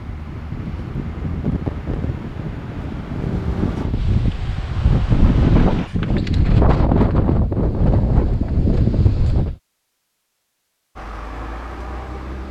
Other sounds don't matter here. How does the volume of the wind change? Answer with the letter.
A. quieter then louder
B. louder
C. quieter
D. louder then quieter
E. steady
B.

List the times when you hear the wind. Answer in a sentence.
The wind can be heard from 0.0 to 9.6 s.